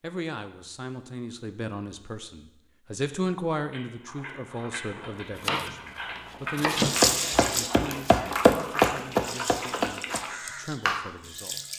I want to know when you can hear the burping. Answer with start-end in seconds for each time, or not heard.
not heard.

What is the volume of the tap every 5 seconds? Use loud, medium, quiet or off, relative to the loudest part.
off, loud, medium.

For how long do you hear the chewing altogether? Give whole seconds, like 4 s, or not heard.
7 s.